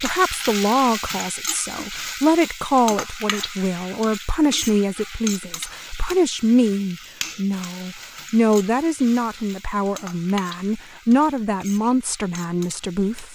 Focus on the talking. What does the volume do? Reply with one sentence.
The volume of the talking stays about the same.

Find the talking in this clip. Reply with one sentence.
The talking can be heard from 0.0 to 13.3 s.